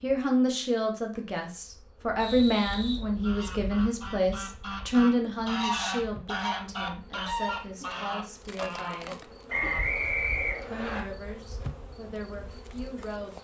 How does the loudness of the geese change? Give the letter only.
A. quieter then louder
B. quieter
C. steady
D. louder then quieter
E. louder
D.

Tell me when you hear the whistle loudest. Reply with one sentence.
The loudest moment of the whistle is at 10 seconds.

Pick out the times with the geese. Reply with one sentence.
The geese can be heard from 3.2 to 9.8 s.